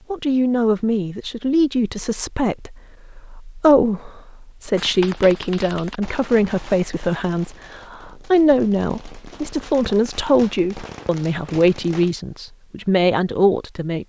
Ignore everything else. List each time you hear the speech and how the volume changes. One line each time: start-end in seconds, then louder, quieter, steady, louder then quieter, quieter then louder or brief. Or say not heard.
0.1-14.0 steady.